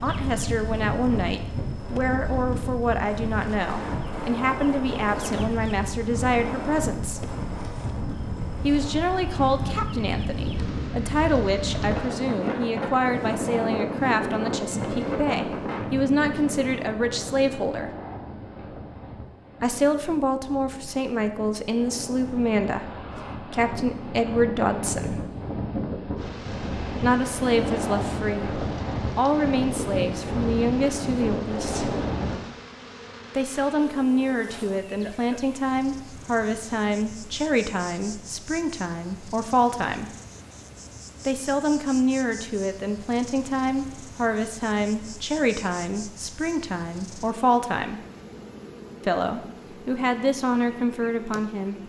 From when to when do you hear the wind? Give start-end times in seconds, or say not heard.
0.0-32.4.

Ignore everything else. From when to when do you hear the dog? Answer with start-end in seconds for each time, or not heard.
not heard.